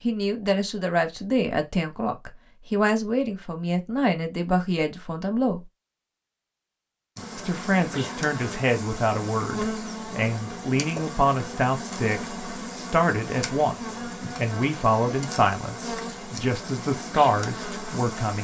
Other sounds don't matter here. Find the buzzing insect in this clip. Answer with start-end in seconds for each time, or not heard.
7.2-18.3.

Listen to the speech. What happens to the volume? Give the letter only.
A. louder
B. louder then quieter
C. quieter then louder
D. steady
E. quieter
D.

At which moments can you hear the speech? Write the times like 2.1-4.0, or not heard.
0.0-5.6, 7.3-18.3.